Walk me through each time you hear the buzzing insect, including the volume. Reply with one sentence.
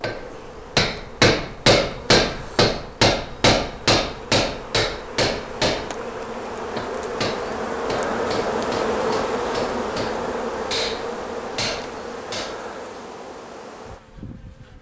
You can hear the buzzing insect from 0.0 to 14.7 s, getting louder then quieter.